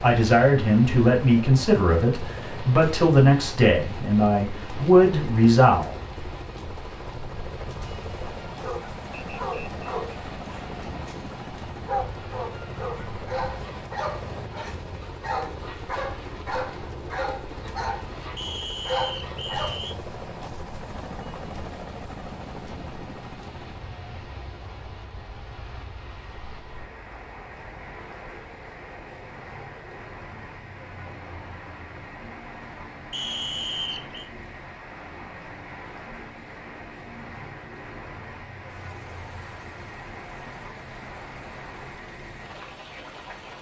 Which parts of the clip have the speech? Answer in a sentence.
You can hear the speech from 0.0 to 5.9 s.